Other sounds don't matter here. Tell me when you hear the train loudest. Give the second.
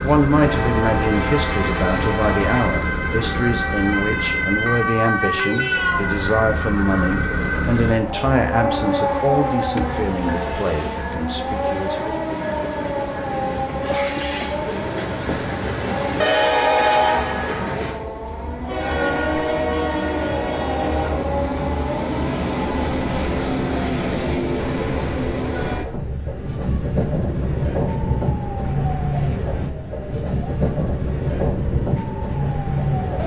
17 s.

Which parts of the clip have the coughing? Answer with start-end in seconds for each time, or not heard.
13.8-14.6.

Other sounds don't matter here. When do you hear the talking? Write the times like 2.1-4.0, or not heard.
0.0-12.2.